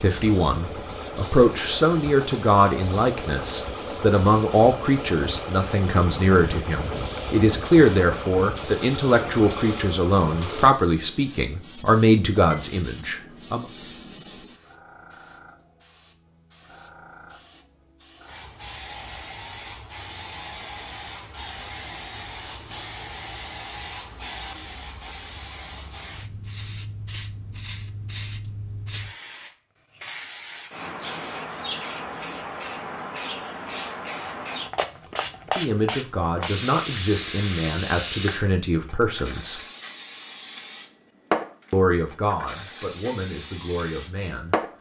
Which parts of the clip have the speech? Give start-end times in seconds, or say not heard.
0.0-13.7, 35.5-39.6, 41.7-44.5.